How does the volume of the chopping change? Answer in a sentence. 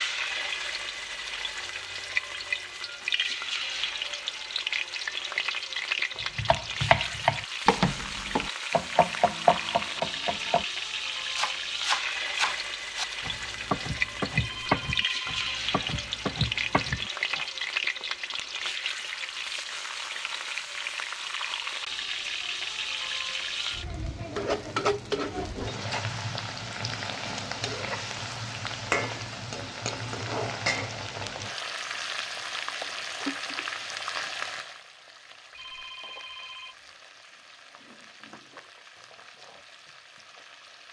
The loudness of the chopping goes down.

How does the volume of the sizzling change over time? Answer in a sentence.
The loudness of the sizzling goes down.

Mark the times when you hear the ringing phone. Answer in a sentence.
You can hear the ringing phone from 14.3 to 15.3 s and from 35.5 to 36.8 s.